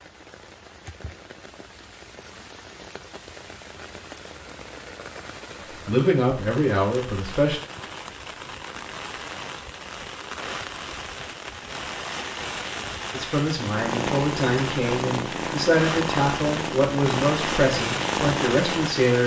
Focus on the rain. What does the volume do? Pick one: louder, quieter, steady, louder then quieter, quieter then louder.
louder.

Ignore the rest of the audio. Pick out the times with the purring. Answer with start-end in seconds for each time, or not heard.
13.6-19.1.